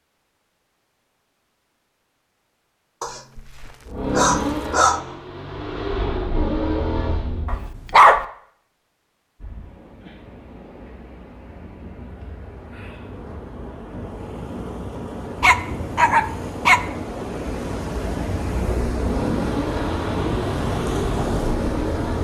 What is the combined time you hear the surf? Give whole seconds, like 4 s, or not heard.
13 s.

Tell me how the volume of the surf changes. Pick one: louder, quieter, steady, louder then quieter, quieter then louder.
louder.